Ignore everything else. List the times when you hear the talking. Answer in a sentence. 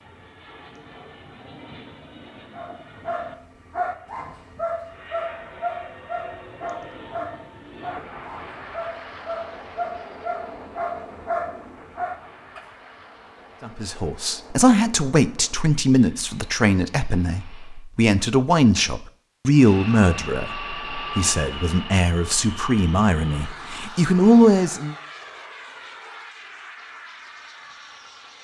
You can hear the talking from 13.6 to 24.9 s.